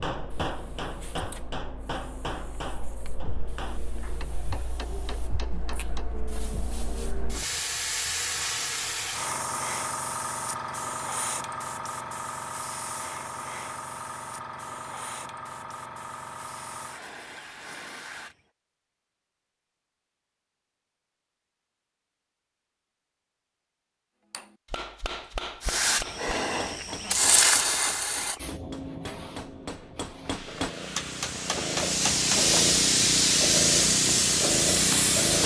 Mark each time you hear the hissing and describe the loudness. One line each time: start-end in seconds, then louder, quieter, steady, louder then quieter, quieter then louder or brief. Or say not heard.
0.1-18.4 louder then quieter
25.6-35.4 quieter then louder.